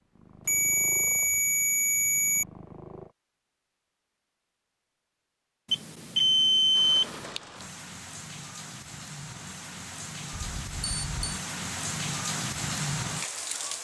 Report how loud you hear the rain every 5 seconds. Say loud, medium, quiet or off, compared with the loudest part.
off, medium, loud.